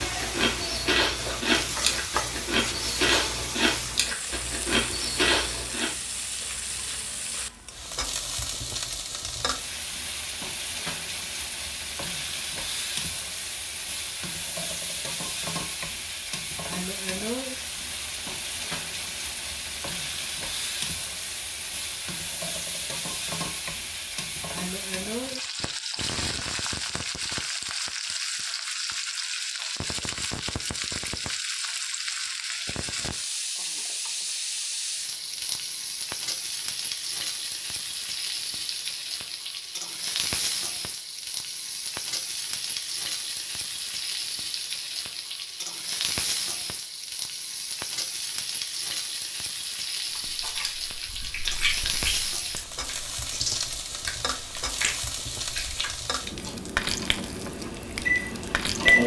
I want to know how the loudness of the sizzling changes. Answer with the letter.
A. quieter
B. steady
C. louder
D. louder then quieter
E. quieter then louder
B.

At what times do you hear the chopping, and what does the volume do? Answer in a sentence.
You can't hear the chopping here.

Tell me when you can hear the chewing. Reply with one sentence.
The chewing can be heard from 0.0 to 5.9 s and from 50.1 to 56.6 s.